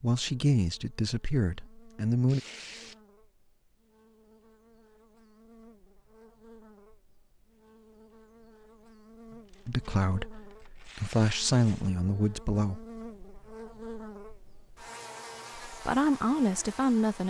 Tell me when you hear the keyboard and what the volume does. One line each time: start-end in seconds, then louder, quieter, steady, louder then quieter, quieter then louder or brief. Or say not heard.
not heard.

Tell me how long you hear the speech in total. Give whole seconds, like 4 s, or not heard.
7 s.